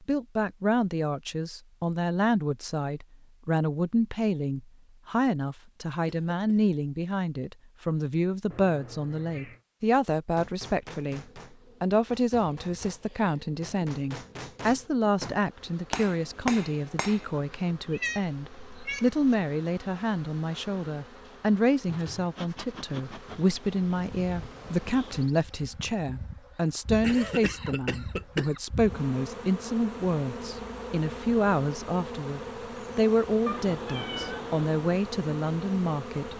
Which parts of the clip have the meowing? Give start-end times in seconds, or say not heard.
8.5-9.6, 17.9-19.2, 33.5-34.7.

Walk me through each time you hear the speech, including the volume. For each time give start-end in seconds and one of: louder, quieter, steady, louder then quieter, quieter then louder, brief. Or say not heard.
0.0-36.3 steady.